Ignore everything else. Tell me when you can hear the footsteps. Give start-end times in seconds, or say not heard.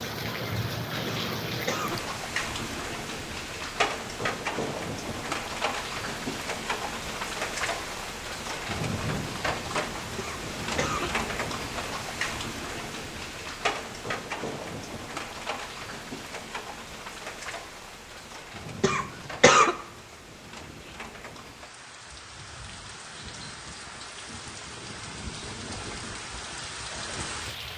not heard.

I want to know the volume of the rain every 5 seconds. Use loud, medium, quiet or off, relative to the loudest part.
loud, loud, loud, medium, medium, medium.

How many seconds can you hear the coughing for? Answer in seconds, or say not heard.
3 s.